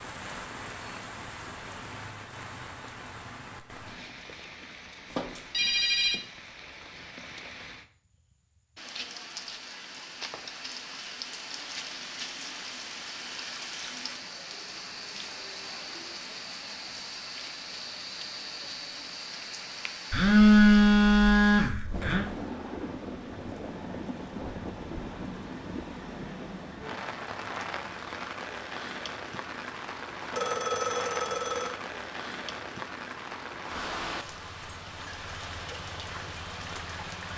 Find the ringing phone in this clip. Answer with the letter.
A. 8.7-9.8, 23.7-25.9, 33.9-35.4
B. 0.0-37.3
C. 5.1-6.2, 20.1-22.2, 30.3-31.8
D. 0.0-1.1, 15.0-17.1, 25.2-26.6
C.